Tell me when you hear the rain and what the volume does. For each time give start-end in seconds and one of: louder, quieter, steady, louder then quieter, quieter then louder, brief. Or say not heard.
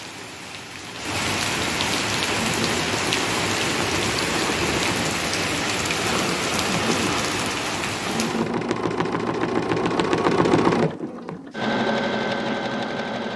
0.0-8.5 steady.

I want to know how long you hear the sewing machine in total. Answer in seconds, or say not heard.
11 s.